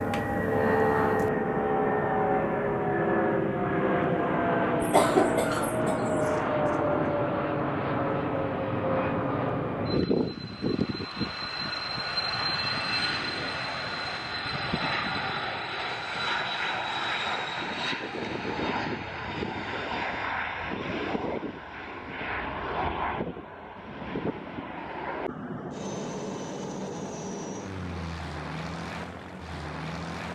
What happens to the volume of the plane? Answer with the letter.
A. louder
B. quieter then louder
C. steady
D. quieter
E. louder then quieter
D.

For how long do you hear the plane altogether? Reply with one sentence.
You can hear the plane for 30 seconds altogether.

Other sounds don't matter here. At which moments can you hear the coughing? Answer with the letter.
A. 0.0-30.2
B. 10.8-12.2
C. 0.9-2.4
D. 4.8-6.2
D.